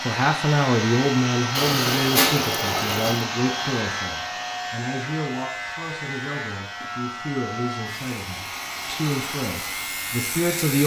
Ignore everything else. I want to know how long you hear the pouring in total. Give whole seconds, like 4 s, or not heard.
2 s.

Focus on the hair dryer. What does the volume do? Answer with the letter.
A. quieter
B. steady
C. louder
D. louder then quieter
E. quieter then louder
E.